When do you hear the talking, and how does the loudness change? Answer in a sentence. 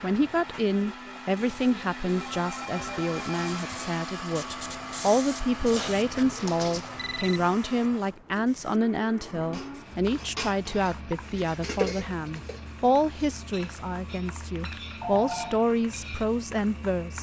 You can hear the talking from 0.0 to 17.1 s, at a steady volume.